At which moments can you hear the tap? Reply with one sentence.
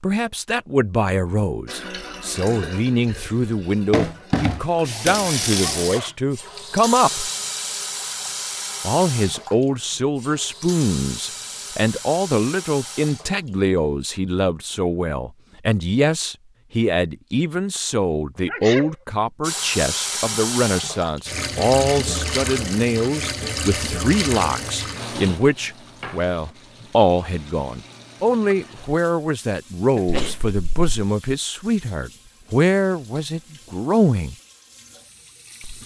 You can hear the tap from 1.6 to 14.2 s and from 19.4 to 35.8 s.